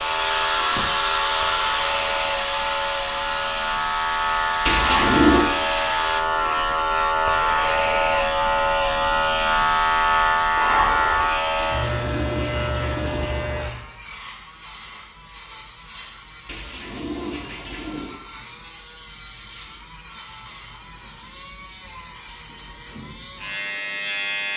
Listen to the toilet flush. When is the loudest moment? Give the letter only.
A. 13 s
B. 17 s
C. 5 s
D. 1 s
C.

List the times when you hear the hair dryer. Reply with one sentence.
The hair dryer can be heard from 0.0 to 6.2 s.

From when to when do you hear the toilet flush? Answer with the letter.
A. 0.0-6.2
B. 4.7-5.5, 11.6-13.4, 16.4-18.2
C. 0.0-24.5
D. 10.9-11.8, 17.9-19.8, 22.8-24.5
B.